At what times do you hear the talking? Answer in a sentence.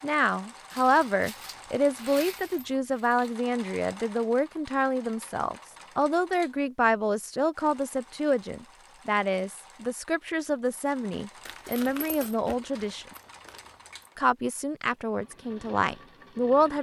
The talking can be heard from 0.0 to 13.1 s and from 14.2 to 16.7 s.